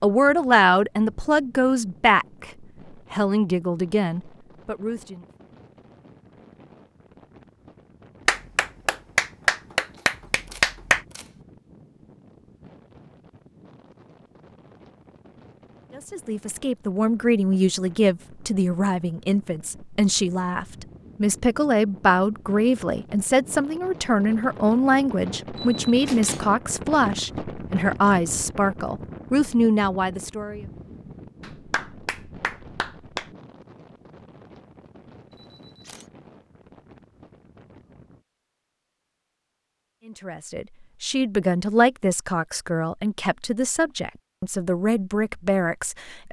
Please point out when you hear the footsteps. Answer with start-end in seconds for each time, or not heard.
not heard.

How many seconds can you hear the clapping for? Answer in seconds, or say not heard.
5 s.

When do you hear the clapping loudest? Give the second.
11 s.